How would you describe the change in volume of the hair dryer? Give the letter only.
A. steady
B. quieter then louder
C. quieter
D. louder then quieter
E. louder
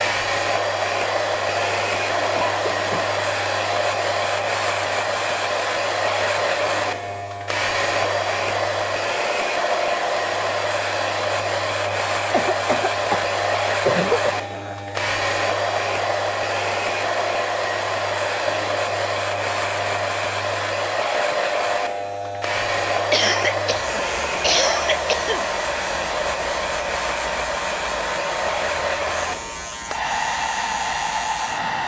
A.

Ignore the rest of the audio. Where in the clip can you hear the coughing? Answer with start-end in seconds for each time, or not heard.
2.3-3.1, 12.3-13.2, 13.8-14.3, 23.1-25.4.